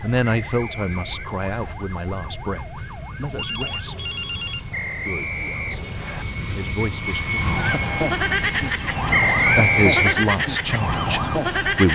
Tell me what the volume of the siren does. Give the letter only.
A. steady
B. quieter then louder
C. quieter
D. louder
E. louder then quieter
D.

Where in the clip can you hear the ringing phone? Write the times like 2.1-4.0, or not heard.
3.4-4.6.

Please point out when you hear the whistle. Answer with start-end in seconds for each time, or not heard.
0.2-1.8, 4.7-6.2, 9.1-10.2.